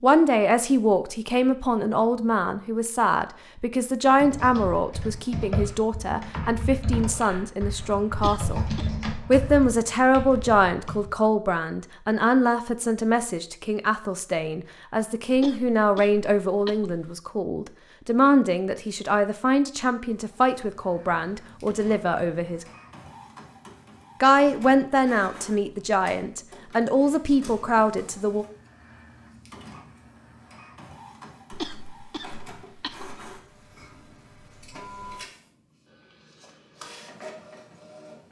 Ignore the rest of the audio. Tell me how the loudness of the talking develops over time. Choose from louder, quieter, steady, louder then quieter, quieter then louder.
steady.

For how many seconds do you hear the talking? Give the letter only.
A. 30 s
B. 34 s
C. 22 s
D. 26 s
D.